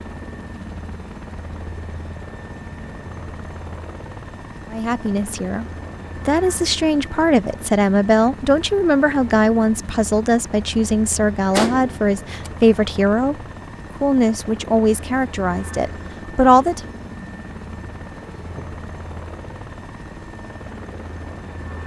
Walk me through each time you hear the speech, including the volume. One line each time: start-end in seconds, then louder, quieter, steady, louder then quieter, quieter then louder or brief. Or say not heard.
4.7-5.7 brief
6.2-13.3 steady
14.0-16.8 brief.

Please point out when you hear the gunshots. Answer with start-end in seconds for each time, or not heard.
11.5-12.5.